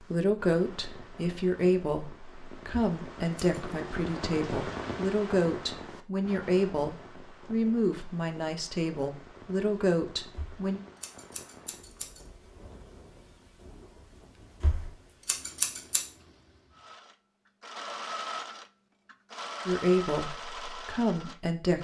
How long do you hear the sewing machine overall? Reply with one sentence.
The sewing machine can be heard for 5 seconds in total.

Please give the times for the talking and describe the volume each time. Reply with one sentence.
You can hear the talking from 0.0 to 10.8 s, at a steady volume; and briefly from 19.6 to 21.7 s.